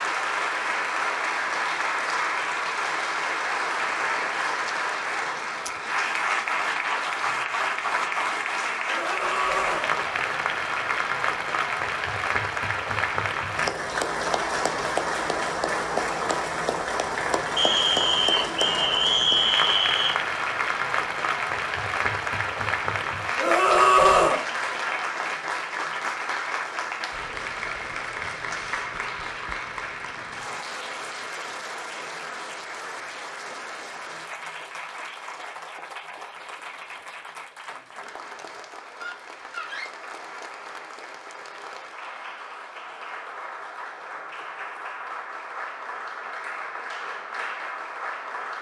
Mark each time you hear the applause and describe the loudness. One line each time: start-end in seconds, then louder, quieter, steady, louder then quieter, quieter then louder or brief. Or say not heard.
0.0-48.5 quieter.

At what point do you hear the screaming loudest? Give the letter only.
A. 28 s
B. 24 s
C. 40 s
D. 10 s
B.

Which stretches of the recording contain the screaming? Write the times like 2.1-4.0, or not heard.
8.8-9.9, 23.4-24.4, 39.0-39.9.